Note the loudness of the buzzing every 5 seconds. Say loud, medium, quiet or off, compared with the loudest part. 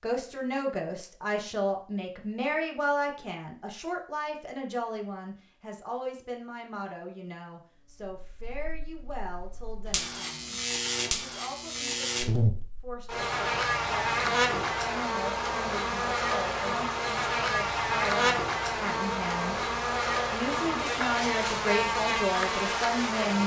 off, quiet, loud, loud, loud.